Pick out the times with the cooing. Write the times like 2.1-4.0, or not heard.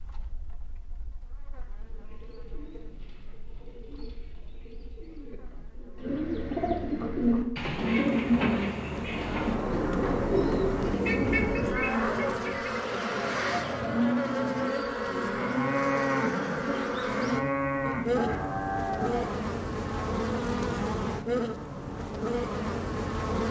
1.6-11.9.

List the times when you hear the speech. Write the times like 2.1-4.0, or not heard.
not heard.